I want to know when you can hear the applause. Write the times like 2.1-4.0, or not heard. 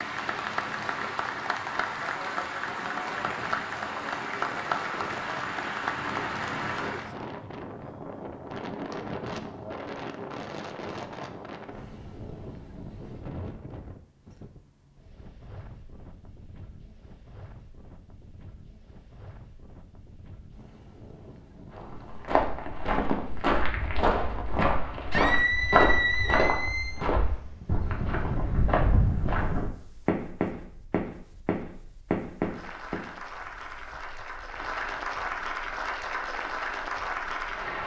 0.0-7.2, 32.4-37.8.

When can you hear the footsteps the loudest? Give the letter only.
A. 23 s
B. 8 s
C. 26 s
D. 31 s
C.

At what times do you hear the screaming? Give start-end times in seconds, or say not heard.
25.1-27.1.